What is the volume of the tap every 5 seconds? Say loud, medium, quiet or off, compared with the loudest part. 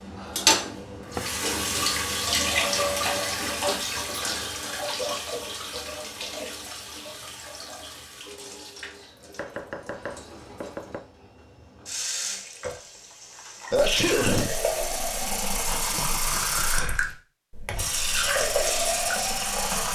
loud, medium, medium, loud.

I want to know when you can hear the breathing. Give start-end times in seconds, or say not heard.
not heard.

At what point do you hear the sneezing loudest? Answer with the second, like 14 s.
14 s.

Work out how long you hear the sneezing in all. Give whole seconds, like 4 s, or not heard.
2 s.